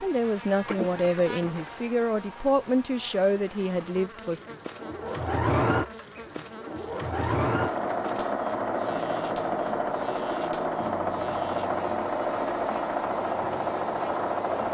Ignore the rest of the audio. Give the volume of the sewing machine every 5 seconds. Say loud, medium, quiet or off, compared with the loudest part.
quiet, loud, loud.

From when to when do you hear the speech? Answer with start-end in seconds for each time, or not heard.
0.0-4.4.